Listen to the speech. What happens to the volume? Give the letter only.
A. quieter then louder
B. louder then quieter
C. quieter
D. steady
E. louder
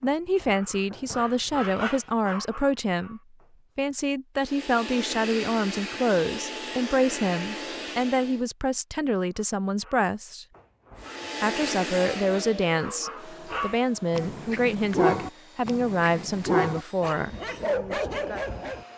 D.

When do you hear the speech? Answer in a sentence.
The speech can be heard from 0.0 to 10.4 s and from 11.4 to 17.4 s.